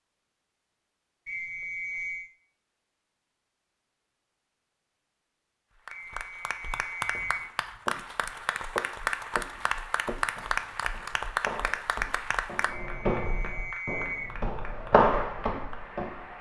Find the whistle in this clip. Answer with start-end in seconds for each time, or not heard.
1.2-2.3, 5.9-7.5, 12.7-14.3.